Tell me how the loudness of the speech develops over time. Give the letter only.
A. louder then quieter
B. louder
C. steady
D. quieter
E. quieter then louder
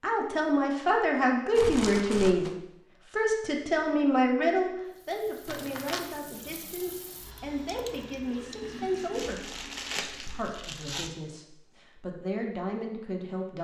D.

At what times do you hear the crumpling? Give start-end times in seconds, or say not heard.
1.6-2.5, 5.5-6.1, 9.1-11.1.